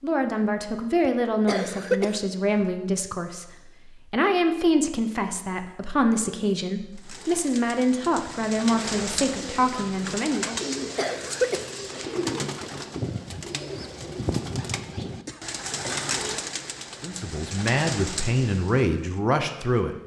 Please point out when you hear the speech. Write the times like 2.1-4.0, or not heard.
0.0-10.6, 17.0-19.9.